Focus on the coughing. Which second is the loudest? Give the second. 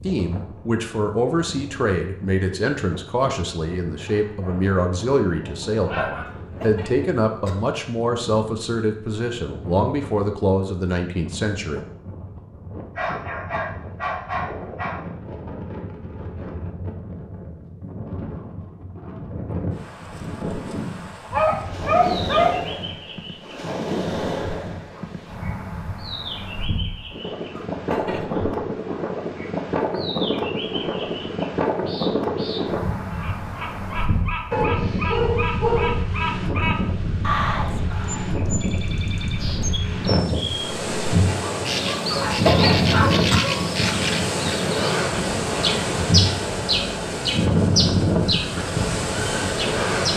43 s.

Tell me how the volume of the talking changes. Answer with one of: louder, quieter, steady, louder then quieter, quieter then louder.
steady.